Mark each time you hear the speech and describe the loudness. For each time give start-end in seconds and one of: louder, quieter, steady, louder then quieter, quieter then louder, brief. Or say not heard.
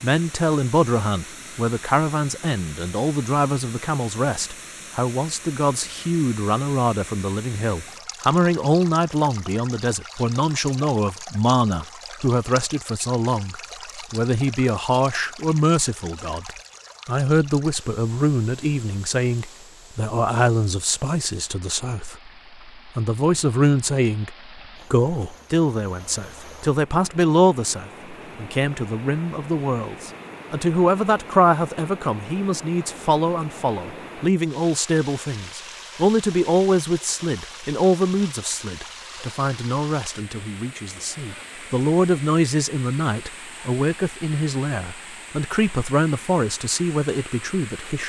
0.0-48.0 steady.